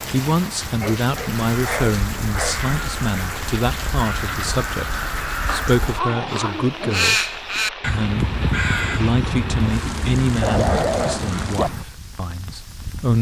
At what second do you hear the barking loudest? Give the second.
11 s.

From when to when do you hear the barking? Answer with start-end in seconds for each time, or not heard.
0.6-2.5, 5.5-7.2, 10.4-11.7.